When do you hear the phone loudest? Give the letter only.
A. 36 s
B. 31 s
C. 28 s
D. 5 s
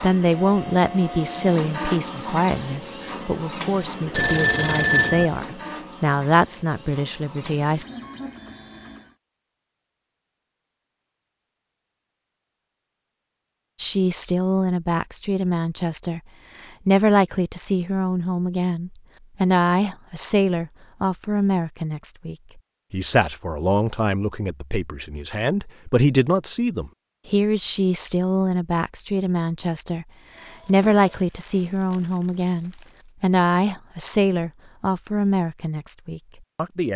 D.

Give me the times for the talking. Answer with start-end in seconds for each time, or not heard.
0.0-7.8, 13.8-36.9.